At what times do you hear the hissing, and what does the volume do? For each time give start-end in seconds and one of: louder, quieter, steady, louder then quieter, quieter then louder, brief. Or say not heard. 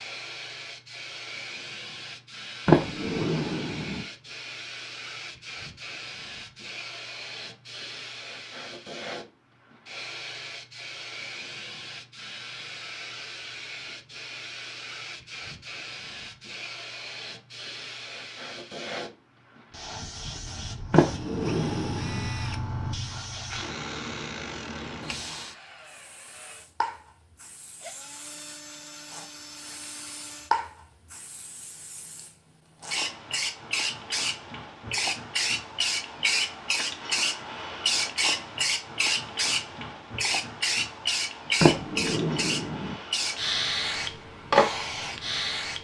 0.0-45.7 louder.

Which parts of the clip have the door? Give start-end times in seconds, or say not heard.
2.6-4.0, 20.9-22.3, 41.6-43.0.